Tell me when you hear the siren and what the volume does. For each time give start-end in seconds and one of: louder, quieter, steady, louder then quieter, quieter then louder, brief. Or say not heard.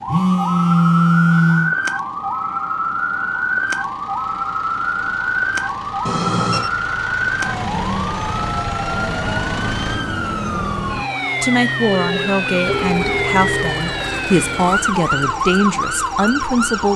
0.0-16.9 steady.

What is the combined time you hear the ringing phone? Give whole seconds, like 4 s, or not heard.
4 s.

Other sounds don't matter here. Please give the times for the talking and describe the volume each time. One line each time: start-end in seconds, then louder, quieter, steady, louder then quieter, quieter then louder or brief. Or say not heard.
11.4-16.9 steady.